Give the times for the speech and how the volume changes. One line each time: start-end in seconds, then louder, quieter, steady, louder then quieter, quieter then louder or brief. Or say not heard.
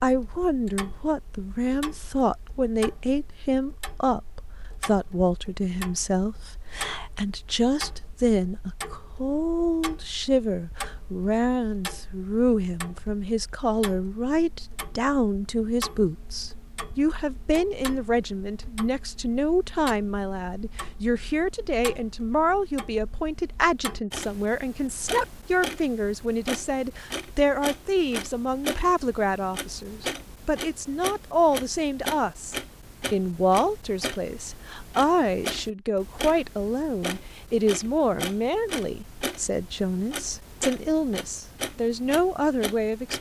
0.0-43.1 steady.